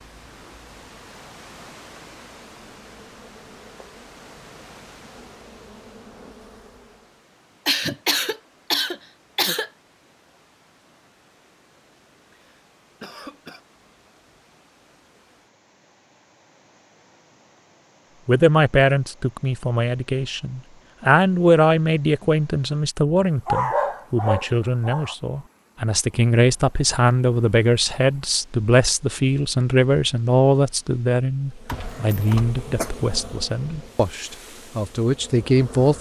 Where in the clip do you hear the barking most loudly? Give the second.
24 s.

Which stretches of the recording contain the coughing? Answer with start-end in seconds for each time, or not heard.
7.7-9.7, 12.3-13.6, 31.6-32.9.